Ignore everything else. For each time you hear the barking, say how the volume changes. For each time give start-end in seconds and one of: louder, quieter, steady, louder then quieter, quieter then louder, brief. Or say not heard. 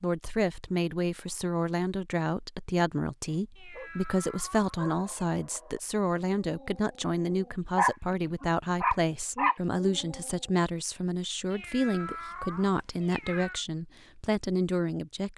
3.2-3.9 brief
4.8-10.3 louder.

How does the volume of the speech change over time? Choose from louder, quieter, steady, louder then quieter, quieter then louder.
steady.